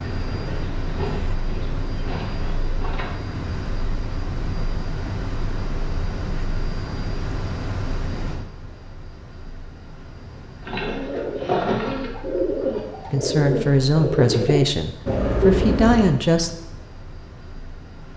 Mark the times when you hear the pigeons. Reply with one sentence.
The pigeons can be heard from 0.2 to 3.1 s and from 10.6 to 16.1 s.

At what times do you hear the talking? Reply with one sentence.
You can hear the talking from 13.1 to 16.5 s.